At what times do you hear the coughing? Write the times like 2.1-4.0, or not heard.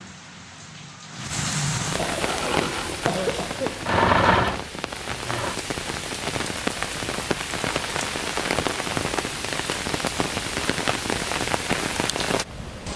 1.8-3.8.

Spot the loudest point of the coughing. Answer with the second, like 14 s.
3 s.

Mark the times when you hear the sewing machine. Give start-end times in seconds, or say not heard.
2.1-5.5.